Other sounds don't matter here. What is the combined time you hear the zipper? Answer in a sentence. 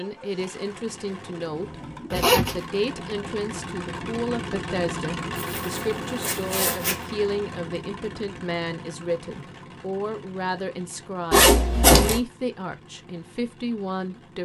You can hear the zipper for 3 seconds altogether.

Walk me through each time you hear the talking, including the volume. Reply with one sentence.
The talking can be heard from 0.0 to 14.4 s, at a steady volume.